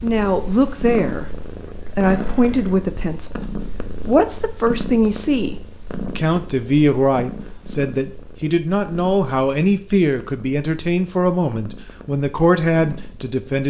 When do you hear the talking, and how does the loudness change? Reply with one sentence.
You can hear the talking from 0.0 to 13.6 s, at a steady volume.